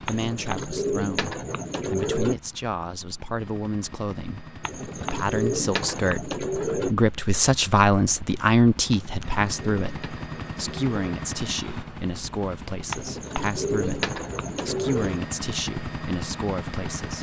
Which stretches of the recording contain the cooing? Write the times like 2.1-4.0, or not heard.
0.1-2.4, 4.6-7.0, 8.9-11.2, 12.9-15.2.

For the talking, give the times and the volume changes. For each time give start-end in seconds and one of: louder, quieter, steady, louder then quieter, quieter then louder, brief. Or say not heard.
0.0-17.1 louder then quieter.